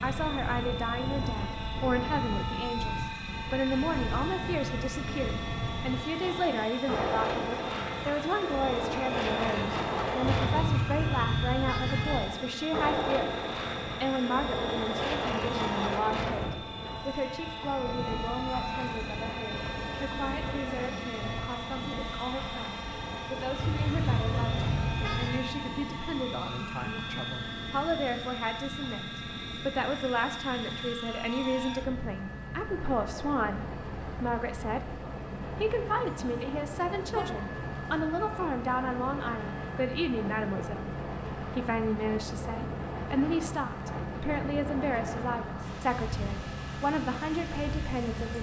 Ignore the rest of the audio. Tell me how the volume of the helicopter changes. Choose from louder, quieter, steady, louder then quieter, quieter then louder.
steady.